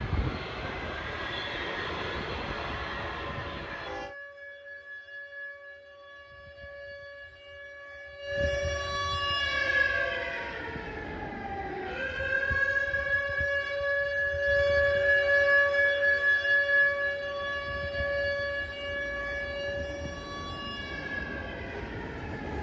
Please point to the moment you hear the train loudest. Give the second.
2 s.